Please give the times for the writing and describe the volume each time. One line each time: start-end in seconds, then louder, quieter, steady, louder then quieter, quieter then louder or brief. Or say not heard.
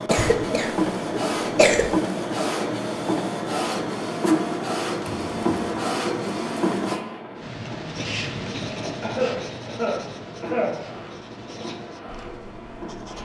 7.3-13.1 quieter.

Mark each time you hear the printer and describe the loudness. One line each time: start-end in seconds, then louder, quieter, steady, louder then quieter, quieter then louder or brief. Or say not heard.
0.0-13.1 quieter.